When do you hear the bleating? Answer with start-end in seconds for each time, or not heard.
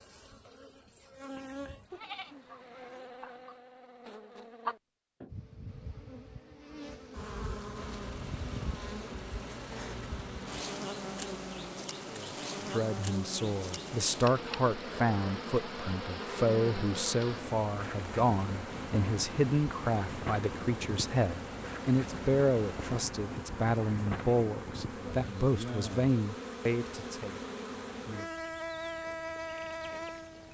1.9-3.1.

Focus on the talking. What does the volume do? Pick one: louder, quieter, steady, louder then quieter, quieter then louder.
steady.